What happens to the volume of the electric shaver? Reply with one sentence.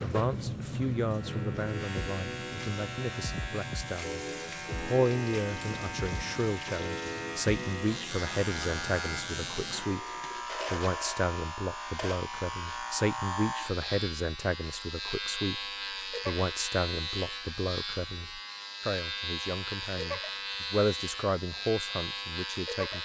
The volume of the electric shaver stays about the same.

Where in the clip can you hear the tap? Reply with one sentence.
You can hear the tap from 0.0 to 10.4 s.